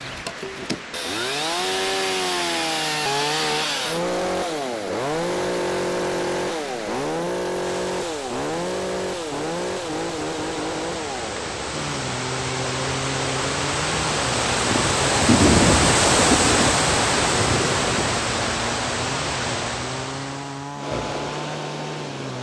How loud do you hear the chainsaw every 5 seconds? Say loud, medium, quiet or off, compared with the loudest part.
loud, loud, medium, medium, medium.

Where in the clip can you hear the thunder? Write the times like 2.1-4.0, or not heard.
14.7-18.2.